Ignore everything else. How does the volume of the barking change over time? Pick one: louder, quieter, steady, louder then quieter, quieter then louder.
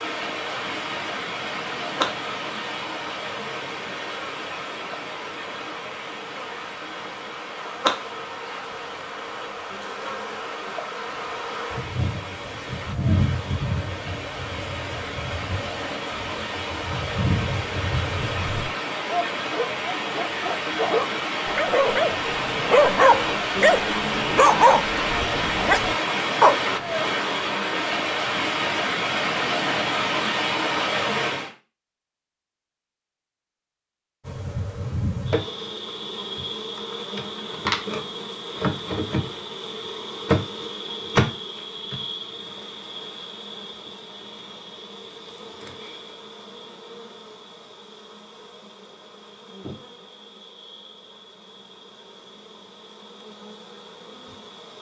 louder then quieter.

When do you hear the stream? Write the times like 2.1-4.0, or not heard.
0.0-31.5.